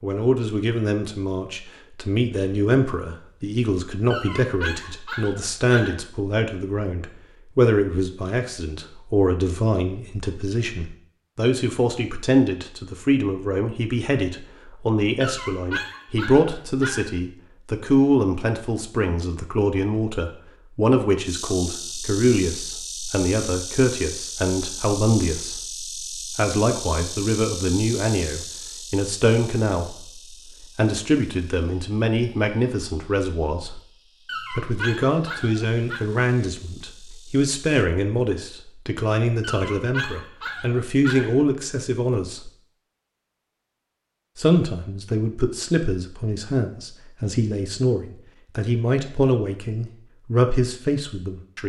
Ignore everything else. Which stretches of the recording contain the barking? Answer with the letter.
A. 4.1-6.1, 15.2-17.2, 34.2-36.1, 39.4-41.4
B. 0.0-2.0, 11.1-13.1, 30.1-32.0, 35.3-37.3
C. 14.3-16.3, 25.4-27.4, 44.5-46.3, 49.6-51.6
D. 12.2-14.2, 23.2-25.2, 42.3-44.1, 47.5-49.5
A.